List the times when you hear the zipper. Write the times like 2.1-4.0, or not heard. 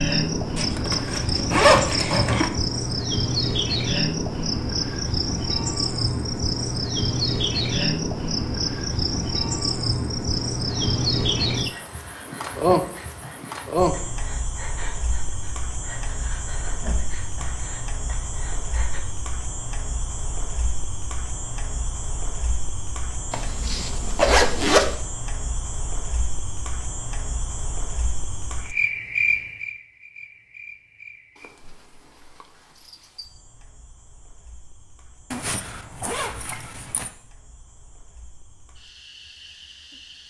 0.6-2.5, 23.3-24.9, 35.3-37.1.